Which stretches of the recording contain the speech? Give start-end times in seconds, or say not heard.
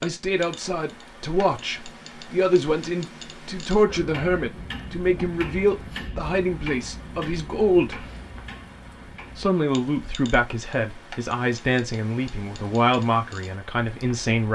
0.0-8.1, 9.3-14.5.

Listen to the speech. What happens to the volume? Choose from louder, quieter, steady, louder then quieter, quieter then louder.
steady.